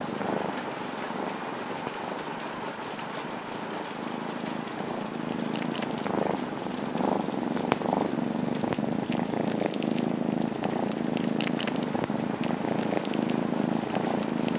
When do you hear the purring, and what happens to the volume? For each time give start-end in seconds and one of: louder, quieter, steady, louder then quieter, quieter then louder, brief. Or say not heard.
0.0-14.5 louder.